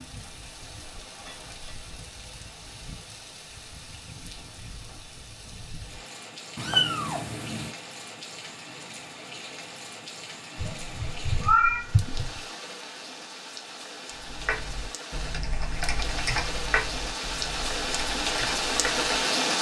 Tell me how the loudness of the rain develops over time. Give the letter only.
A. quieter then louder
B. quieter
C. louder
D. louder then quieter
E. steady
C.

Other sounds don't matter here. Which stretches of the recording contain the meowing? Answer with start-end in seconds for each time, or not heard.
6.5-7.7, 10.6-12.4.